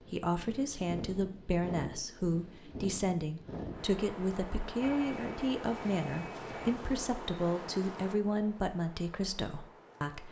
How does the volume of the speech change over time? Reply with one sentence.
The volume of the speech stays about the same.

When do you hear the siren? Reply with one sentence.
The siren can't be heard in this clip.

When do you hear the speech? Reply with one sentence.
You can hear the speech from 0.0 to 10.2 s.